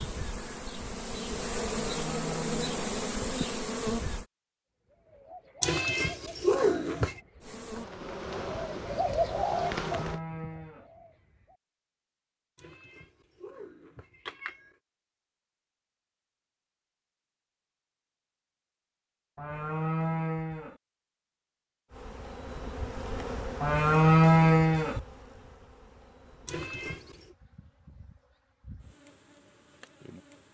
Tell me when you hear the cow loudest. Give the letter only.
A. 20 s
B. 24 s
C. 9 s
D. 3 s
B.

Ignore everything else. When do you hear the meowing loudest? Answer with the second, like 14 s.
7 s.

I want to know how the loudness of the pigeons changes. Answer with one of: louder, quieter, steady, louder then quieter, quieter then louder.
louder then quieter.